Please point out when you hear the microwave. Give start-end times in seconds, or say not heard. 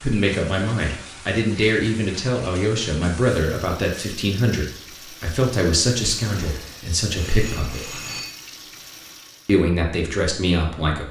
not heard.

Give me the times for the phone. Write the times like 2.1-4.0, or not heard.
7.1-8.3.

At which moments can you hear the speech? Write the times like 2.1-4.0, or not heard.
0.0-8.0, 9.4-11.0.